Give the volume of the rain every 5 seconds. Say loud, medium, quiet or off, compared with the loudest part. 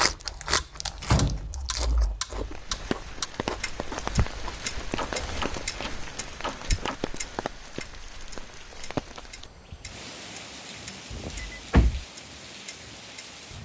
loud, loud, medium.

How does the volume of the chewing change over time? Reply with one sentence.
The loudness of the chewing goes down.